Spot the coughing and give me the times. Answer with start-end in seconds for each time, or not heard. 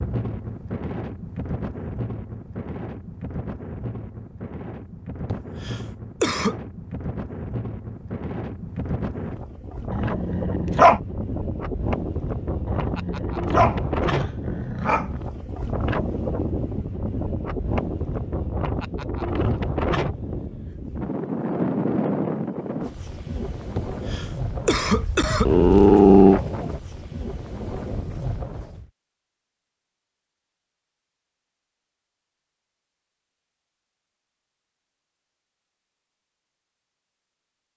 5.2-6.5, 23.8-25.4.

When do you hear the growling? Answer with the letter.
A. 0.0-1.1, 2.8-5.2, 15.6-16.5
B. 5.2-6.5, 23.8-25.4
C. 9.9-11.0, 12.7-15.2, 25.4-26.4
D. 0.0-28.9
C.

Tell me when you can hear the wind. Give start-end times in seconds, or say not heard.
0.0-28.9.